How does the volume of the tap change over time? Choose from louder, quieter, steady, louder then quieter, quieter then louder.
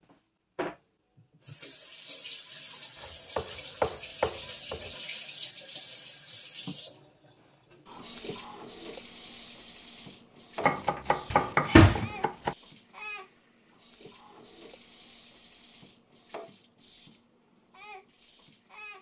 quieter.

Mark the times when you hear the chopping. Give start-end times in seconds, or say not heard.
3.0-4.9, 10.6-12.6.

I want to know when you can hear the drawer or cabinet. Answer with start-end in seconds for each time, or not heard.
11.3-12.1.